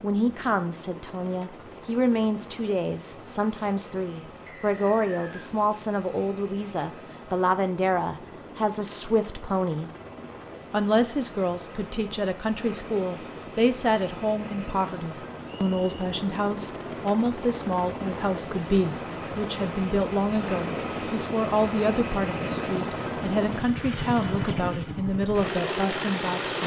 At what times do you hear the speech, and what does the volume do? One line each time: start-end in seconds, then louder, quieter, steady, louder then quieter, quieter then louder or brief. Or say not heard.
0.0-9.9 steady
10.7-26.6 steady.